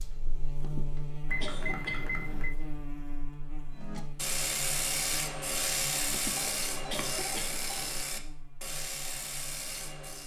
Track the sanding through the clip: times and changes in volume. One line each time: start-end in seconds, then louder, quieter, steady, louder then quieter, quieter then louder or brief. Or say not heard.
3.7-10.2 quieter.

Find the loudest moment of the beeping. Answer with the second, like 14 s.
2 s.